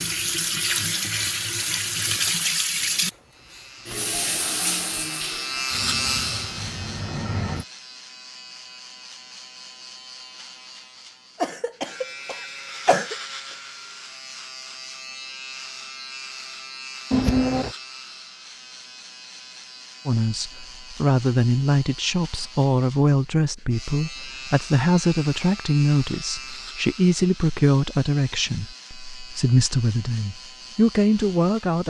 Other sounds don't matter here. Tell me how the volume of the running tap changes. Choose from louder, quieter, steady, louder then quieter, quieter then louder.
quieter.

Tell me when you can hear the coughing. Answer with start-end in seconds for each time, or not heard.
11.4-13.2, 17.1-17.8.